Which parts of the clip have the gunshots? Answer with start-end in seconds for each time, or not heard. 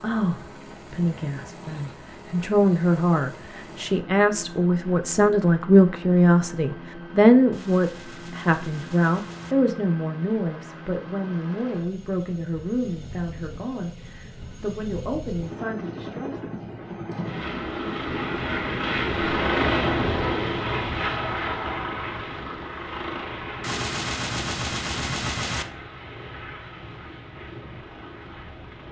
7.5-9.6, 23.6-25.6.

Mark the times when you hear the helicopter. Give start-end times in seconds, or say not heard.
0.0-28.8.